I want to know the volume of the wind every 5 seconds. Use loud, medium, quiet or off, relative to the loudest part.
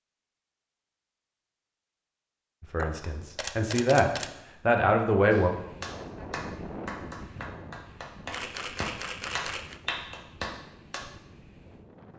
off, loud, medium.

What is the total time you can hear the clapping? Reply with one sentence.
You can hear the clapping for 6 seconds altogether.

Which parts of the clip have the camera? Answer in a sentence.
You can hear the camera from 2.8 to 4.3 s and from 8.3 to 9.8 s.